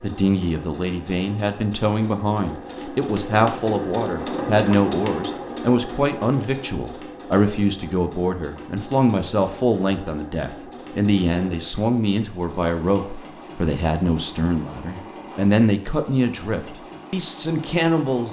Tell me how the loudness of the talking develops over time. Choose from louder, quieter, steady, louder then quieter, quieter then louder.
steady.